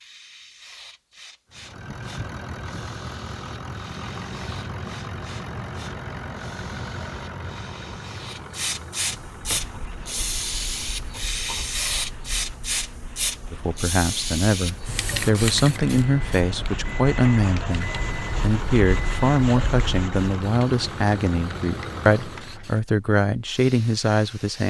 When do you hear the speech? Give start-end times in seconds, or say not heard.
13.5-24.6.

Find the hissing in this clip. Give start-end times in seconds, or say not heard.
0.0-24.6.